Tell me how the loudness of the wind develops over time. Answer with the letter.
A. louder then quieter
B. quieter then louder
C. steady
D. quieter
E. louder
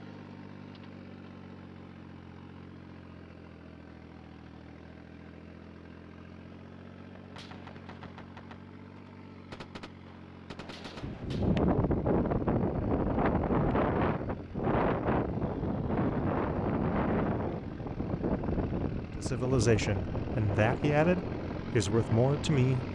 D.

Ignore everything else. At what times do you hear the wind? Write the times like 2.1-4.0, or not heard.
11.0-22.9.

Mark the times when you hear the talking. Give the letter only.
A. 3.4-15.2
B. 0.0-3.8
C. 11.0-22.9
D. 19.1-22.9
D.